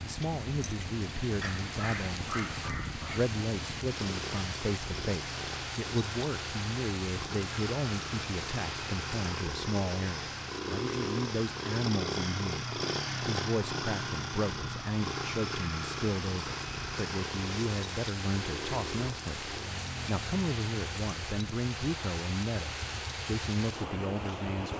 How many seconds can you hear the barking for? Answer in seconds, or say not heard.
2 s.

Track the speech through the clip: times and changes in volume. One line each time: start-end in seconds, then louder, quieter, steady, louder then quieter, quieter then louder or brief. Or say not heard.
0.0-24.7 steady.